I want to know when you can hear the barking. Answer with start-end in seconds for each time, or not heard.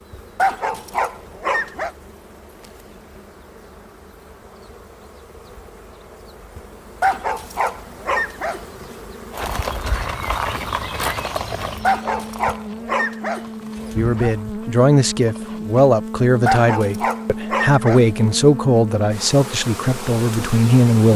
0.3-1.9, 7.0-8.8, 11.8-14.3, 16.4-18.4.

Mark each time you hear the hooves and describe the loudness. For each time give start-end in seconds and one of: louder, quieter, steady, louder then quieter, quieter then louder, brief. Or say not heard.
9.3-15.8 quieter.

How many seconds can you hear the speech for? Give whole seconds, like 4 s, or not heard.
7 s.